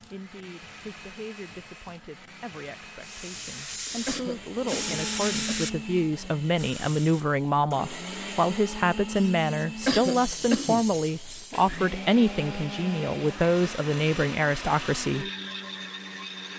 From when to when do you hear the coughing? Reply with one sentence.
You can hear the coughing from 4.0 to 5.6 s and from 9.8 to 10.8 s.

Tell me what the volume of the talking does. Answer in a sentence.
The volume of the talking goes up.